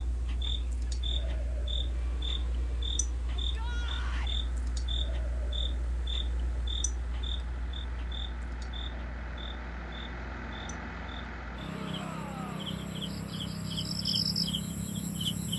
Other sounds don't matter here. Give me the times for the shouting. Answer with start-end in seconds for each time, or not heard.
3.4-4.4, 11.7-12.8.